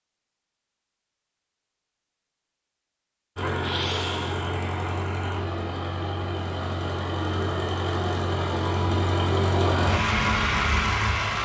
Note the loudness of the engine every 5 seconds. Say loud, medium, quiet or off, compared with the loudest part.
medium, loud, loud.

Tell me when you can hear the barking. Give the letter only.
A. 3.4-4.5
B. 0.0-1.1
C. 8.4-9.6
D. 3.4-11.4
A.